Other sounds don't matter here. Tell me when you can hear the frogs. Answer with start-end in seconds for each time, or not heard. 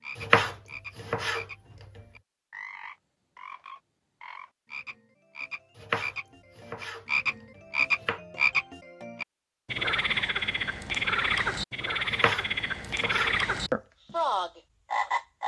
0.0-15.4.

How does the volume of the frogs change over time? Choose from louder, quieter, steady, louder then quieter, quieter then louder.
louder.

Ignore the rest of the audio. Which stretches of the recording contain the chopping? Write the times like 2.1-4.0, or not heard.
0.1-2.0, 5.8-8.2, 12.1-13.3.